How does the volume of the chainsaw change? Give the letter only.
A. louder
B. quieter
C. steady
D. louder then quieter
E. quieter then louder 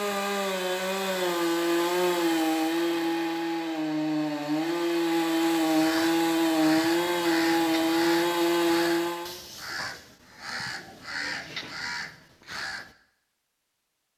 C.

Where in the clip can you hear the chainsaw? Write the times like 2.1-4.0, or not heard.
0.0-9.4.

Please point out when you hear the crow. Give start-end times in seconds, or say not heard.
5.6-12.9.